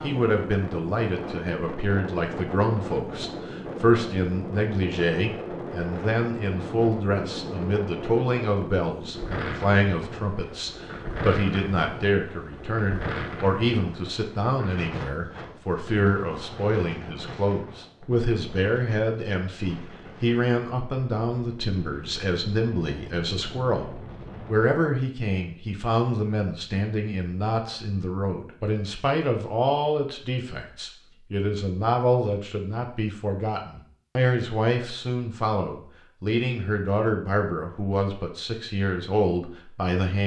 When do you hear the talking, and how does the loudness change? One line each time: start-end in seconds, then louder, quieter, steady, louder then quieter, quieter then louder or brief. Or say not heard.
0.0-40.2 steady.